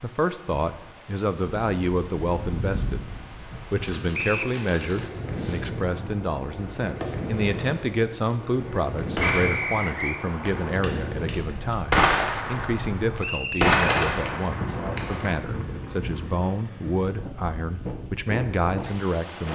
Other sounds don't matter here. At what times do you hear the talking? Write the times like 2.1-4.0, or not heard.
0.0-3.0, 3.7-19.5.